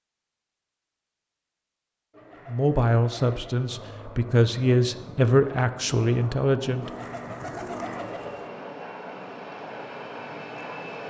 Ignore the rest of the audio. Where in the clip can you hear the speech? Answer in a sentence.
You can hear the speech from 2.5 to 6.9 s.